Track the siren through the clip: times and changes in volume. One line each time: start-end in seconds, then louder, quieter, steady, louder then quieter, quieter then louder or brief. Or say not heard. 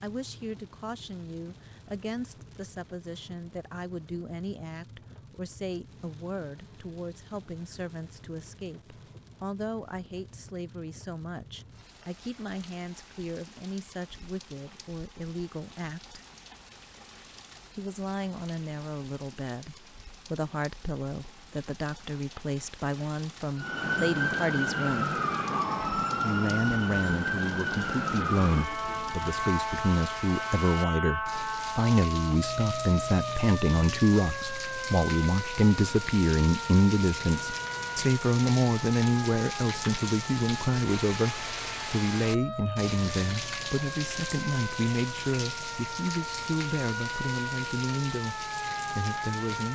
23.6-49.7 quieter.